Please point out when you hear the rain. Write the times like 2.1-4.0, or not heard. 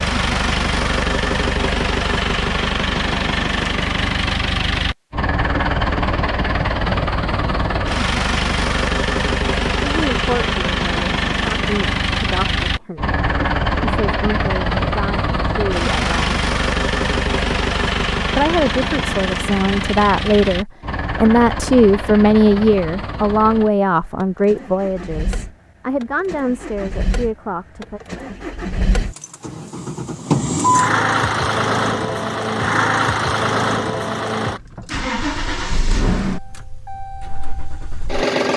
not heard.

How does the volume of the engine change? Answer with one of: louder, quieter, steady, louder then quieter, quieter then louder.
quieter then louder.